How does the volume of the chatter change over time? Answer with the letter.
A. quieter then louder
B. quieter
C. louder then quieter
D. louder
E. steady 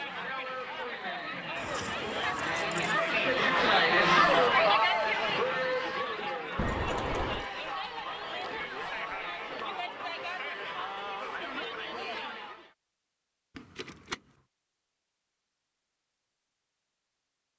C.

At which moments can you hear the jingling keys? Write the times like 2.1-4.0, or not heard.
1.6-3.0, 6.5-7.5, 13.6-14.2.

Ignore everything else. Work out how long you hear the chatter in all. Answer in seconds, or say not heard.
13 s.